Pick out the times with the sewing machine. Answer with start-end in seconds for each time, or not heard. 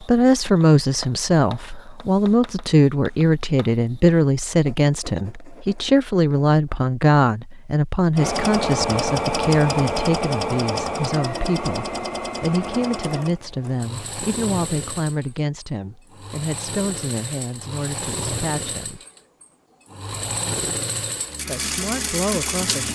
8.2-22.8.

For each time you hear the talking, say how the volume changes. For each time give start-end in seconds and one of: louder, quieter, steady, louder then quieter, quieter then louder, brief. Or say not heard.
0.0-19.0 quieter
21.4-22.8 brief.